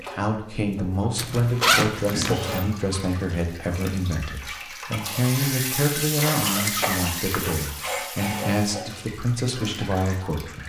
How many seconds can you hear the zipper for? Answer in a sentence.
The zipper can be heard for 2 seconds in total.